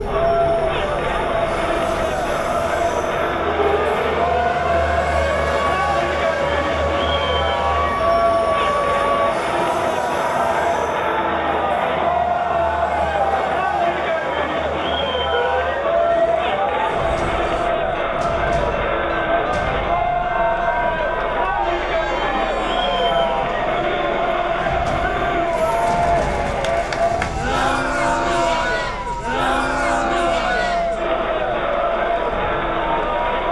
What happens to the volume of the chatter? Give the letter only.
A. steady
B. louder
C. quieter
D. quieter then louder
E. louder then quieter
A.